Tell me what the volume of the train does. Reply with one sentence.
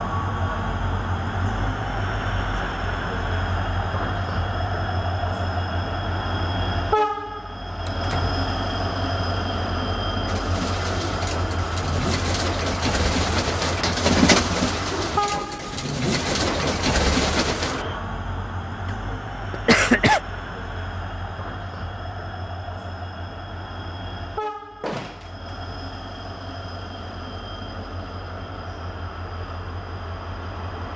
The loudness of the train goes down.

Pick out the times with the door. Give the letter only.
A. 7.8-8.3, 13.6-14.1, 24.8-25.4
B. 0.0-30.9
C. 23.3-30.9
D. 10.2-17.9
A.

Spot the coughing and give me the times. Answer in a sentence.
You can hear the coughing from 18.9 to 20.2 s.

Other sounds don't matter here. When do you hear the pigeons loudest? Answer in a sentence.
The loudest moment of the pigeons is at 14 seconds.